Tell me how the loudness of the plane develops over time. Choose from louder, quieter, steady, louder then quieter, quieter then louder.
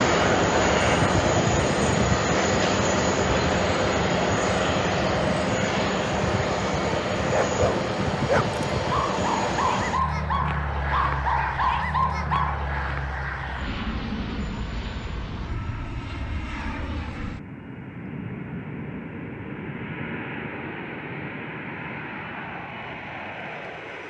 quieter.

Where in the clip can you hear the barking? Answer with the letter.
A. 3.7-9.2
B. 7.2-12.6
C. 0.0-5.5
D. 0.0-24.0
B.